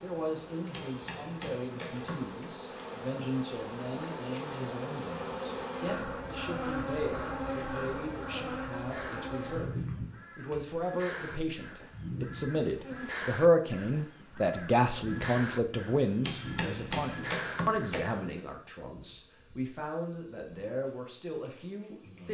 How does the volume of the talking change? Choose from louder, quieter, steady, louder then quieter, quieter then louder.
louder then quieter.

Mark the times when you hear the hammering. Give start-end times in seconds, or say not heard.
0.7-2.4, 16.2-18.1.